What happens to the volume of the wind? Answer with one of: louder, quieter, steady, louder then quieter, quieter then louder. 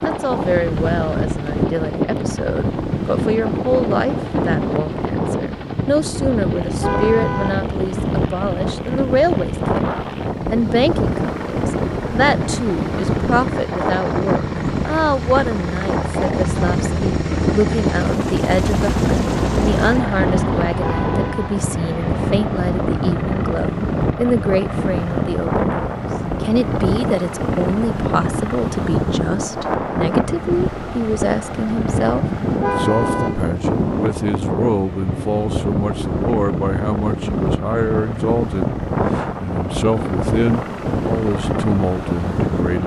steady.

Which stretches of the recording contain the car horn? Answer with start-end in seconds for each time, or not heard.
6.8-7.7, 20.8-21.6, 32.6-33.5.